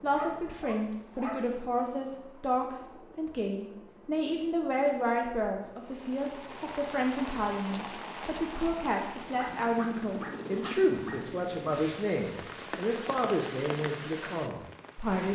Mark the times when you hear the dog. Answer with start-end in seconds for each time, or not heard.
0.0-1.6, 9.3-11.2.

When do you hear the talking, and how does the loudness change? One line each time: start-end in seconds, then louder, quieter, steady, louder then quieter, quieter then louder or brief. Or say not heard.
0.0-15.3 steady.